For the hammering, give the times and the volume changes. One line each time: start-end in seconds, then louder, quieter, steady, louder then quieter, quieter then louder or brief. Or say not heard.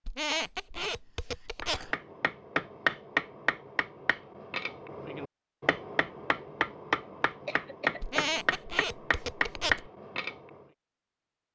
1.6-10.6 quieter then louder.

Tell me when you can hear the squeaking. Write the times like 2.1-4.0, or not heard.
0.1-1.9, 8.0-9.9.